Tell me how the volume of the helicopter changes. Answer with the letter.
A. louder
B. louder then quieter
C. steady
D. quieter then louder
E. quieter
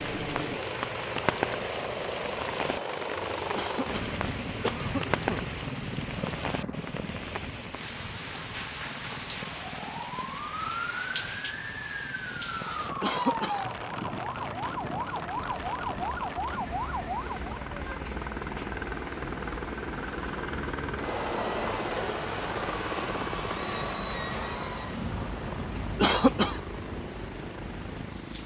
D.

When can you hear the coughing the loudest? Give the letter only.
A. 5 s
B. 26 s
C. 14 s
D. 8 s
B.